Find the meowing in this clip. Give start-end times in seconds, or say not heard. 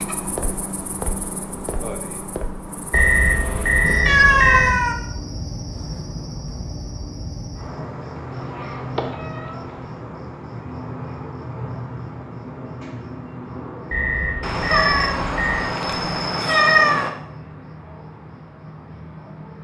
4.0-5.0, 8.3-9.6, 14.4-17.1.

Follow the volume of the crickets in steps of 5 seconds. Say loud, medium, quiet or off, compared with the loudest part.
loud, loud, loud, medium.